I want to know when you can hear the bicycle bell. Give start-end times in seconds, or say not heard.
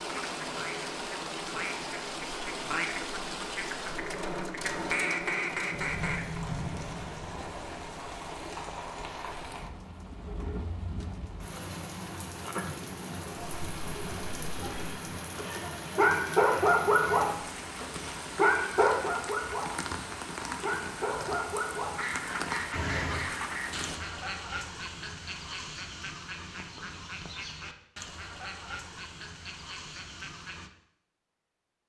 not heard.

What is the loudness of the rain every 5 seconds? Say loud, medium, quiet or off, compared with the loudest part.
loud, loud, loud, loud, loud, off, off.